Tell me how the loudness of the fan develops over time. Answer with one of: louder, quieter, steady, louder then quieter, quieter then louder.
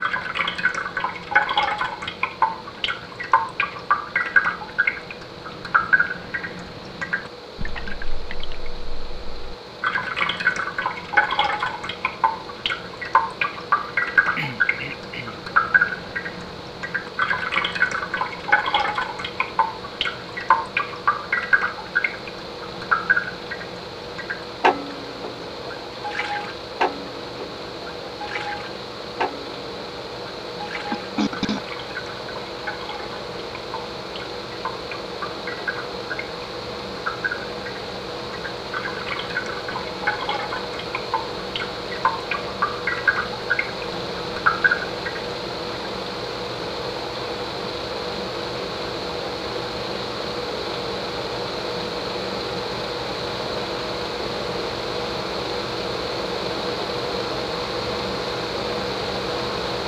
louder.